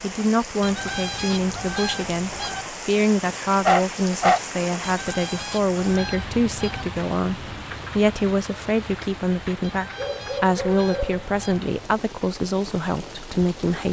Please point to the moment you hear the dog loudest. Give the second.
4 s.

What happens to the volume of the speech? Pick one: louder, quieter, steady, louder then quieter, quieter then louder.
steady.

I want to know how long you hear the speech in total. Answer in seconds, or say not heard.
14 s.